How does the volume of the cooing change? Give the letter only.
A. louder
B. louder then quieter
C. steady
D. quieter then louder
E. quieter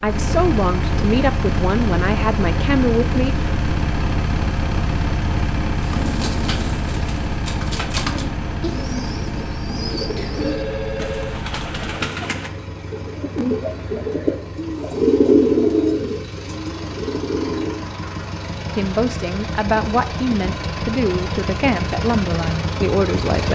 A.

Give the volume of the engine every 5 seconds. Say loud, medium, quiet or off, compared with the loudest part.
loud, loud, medium, medium, loud.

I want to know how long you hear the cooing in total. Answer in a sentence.
You can hear the cooing for 12 seconds altogether.